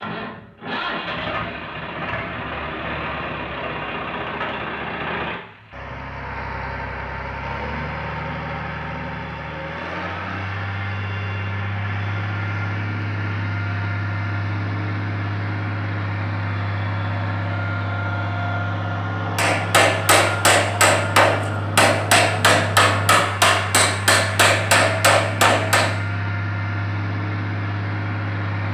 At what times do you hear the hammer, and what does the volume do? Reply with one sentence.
The hammer can be heard from 19.4 to 25.9 s, at a steady volume.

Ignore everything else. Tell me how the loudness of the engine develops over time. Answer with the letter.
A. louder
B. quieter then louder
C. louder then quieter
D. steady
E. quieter
D.